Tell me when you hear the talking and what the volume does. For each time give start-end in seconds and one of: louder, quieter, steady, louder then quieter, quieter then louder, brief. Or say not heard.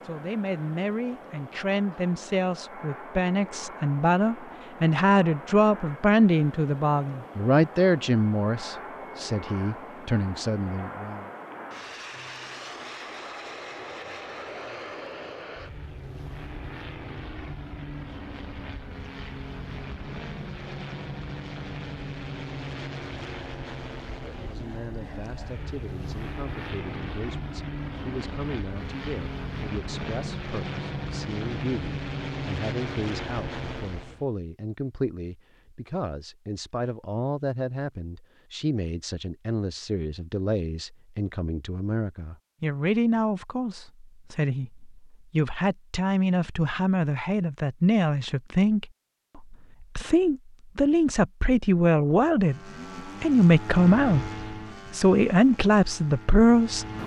0.1-11.3 louder then quieter
24.1-54.2 louder
54.9-56.9 brief.